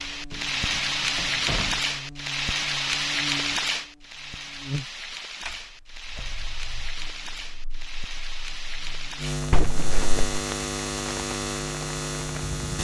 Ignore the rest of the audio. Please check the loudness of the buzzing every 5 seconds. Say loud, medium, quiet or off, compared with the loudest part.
medium, medium, loud.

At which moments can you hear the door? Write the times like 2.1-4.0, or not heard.
0.3-1.8, 5.5-7.0, 9.5-10.4.